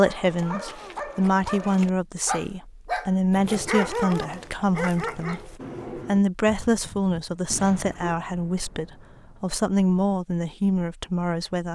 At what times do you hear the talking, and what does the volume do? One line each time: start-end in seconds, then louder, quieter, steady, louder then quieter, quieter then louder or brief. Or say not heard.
0.0-11.7 steady.